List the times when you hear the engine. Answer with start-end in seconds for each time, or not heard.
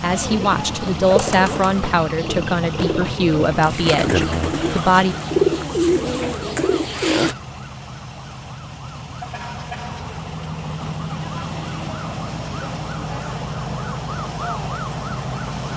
0.0-15.7.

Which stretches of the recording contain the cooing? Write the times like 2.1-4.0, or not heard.
0.1-7.3.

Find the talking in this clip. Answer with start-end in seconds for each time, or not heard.
0.0-5.2.